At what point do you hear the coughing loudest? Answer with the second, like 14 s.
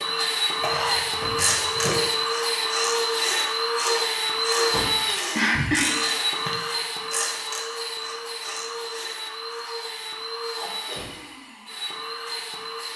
6 s.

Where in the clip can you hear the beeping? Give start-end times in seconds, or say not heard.
not heard.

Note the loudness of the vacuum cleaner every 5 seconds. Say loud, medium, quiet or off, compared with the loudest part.
loud, medium, medium.